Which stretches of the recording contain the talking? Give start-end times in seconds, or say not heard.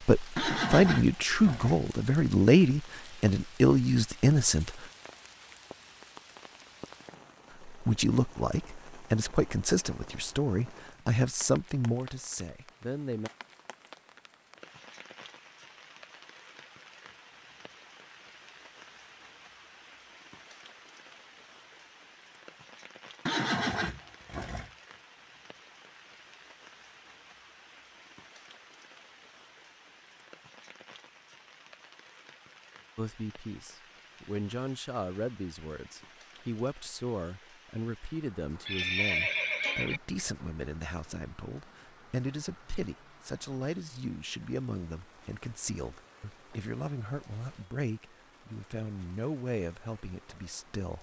0.0-4.8, 7.7-13.3, 33.0-50.9.